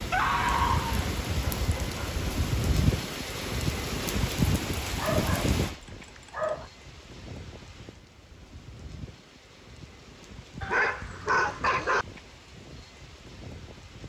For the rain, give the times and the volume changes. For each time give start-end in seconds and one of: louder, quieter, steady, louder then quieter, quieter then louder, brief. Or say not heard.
0.0-14.0 quieter.